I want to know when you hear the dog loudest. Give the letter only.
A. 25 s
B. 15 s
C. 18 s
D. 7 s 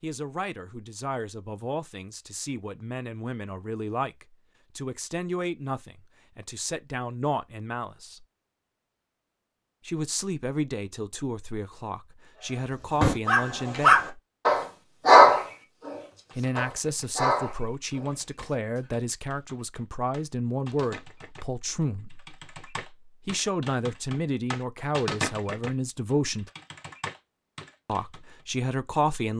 B.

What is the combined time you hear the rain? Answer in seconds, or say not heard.
not heard.